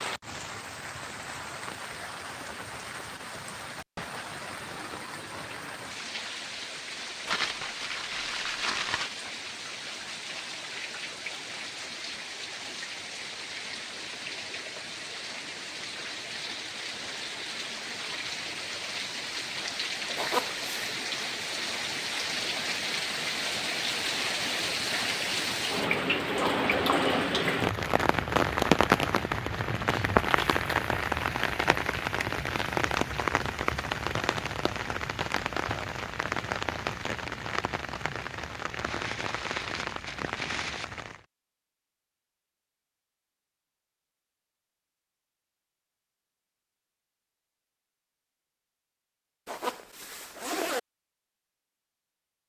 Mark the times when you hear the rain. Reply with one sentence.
You can hear the rain from 0.0 to 41.2 s.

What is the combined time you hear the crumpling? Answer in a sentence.
The crumpling can be heard for 5 seconds in total.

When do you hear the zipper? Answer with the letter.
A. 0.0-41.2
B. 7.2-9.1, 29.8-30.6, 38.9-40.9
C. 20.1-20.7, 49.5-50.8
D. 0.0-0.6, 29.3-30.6
C.